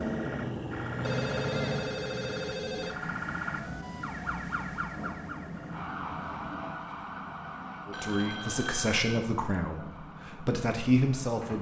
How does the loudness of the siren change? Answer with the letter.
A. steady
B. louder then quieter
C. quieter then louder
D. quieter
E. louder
D.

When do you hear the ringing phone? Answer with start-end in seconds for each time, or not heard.
1.0-3.0, 7.9-9.0.